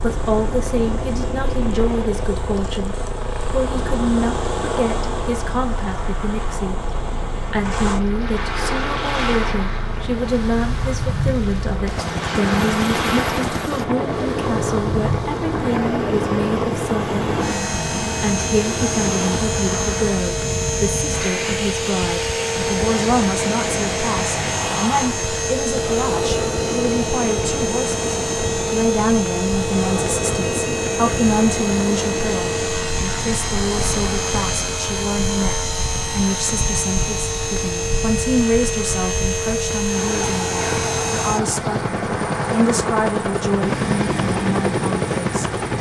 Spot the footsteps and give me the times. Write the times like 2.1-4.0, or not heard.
not heard.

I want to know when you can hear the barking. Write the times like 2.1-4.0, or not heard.
not heard.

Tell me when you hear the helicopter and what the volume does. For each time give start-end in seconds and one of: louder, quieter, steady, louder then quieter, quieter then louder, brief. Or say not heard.
0.0-45.7 louder.